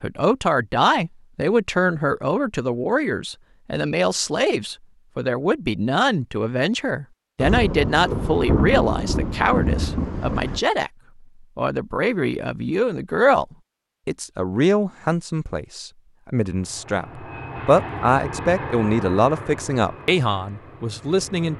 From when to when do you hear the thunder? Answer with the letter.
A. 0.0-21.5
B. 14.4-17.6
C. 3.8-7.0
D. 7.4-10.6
D.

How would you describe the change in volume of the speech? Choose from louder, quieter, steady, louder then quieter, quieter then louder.
steady.